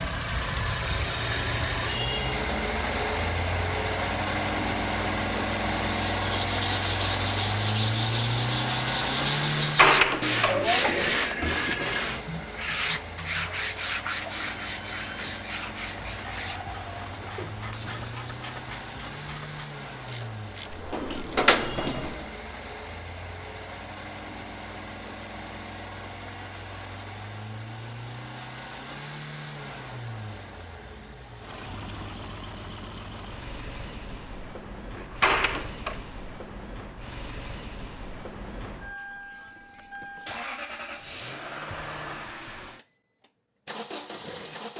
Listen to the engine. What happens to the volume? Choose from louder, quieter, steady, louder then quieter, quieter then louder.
quieter.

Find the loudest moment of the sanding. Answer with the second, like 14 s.
11 s.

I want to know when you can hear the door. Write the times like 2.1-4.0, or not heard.
9.6-11.3, 20.7-22.2, 35.0-36.0.